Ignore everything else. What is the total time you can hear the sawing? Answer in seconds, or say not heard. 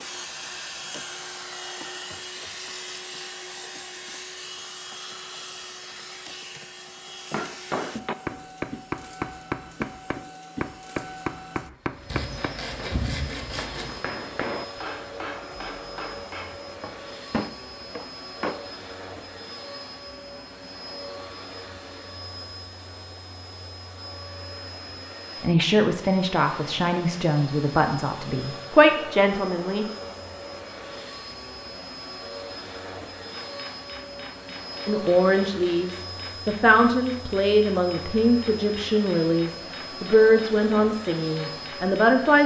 2 s.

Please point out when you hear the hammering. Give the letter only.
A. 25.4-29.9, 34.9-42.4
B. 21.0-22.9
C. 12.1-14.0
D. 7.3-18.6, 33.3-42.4
D.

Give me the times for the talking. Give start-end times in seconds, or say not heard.
25.4-29.9, 34.9-42.4.